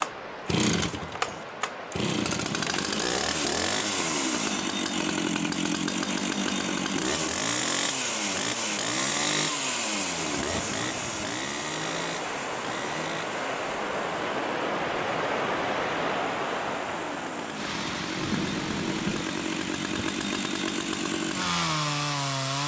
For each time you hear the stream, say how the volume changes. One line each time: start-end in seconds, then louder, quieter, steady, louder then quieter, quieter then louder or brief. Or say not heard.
0.0-22.6 louder then quieter.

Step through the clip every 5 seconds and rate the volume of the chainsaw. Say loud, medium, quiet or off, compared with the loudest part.
loud, loud, medium, medium, loud.